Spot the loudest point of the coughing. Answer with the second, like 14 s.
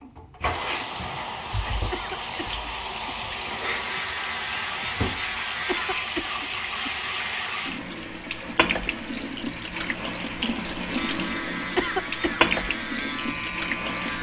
12 s.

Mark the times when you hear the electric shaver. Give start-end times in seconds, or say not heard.
3.6-6.0, 10.9-14.1.